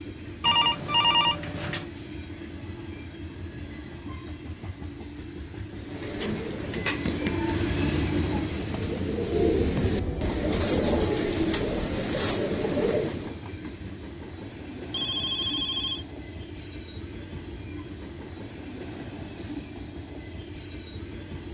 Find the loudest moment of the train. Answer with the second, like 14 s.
8 s.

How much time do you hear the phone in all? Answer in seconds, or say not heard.
4 s.